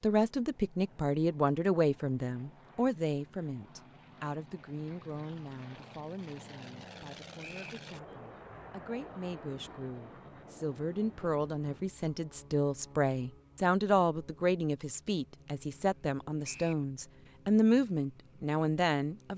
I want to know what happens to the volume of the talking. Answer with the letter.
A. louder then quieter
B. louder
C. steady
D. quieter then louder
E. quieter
D.